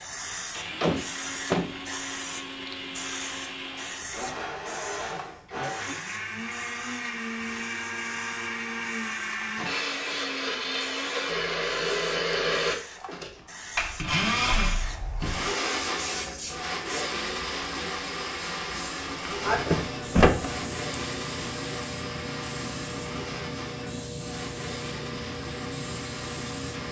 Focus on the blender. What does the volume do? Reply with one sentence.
The loudness of the blender goes up, then down.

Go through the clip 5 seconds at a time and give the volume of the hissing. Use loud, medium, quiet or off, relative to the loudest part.
loud, medium, medium, loud, loud, loud.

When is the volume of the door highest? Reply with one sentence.
The loudest moment of the door is at 20 seconds.